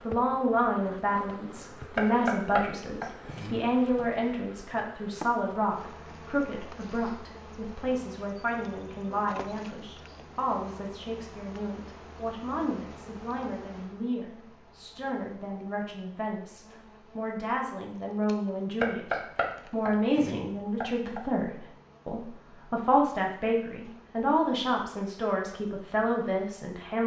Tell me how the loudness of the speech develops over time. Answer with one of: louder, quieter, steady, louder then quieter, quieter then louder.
quieter then louder.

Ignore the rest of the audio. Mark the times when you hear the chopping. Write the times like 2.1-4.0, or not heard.
1.9-3.5, 18.8-21.2.